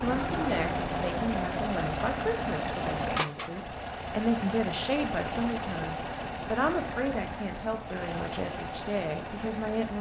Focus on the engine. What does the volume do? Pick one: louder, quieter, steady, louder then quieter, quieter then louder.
quieter.